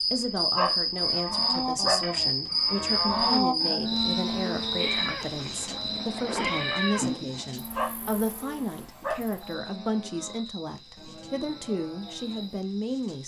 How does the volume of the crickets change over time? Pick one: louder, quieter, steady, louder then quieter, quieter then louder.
quieter.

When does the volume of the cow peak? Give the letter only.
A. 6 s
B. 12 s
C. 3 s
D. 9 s
C.